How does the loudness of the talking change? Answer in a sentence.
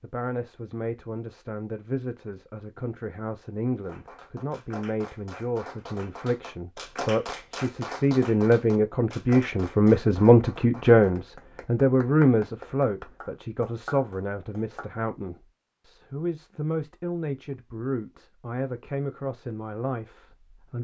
The loudness of the talking goes up, then down.